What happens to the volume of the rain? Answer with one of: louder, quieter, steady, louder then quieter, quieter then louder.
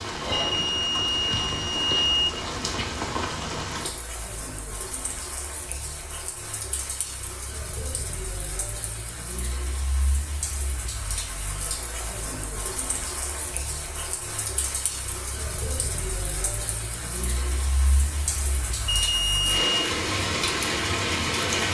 quieter then louder.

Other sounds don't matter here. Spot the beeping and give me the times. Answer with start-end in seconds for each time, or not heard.
0.3-2.3, 19.0-19.8.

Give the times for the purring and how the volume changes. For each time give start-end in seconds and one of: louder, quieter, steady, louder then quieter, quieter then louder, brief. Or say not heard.
not heard.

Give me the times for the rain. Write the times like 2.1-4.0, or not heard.
0.0-21.6.